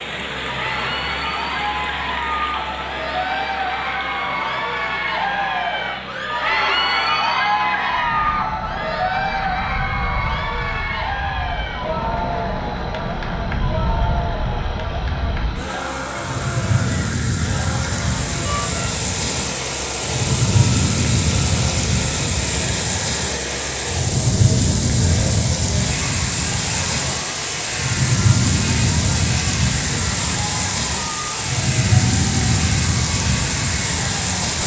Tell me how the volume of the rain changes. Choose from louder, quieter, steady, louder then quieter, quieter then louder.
louder.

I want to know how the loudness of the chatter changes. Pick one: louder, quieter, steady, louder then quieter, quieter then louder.
quieter.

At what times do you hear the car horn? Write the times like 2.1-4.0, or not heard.
18.4-18.9.